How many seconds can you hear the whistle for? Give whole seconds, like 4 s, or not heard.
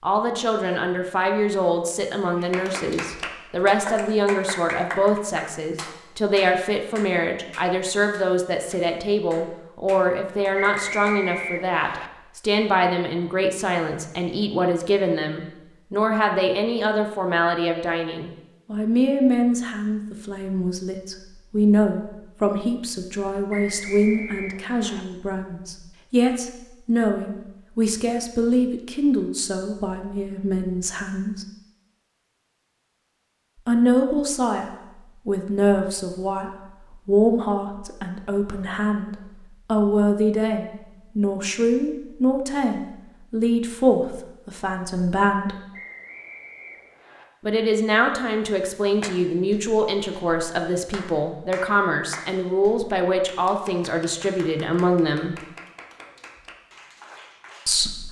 5 s.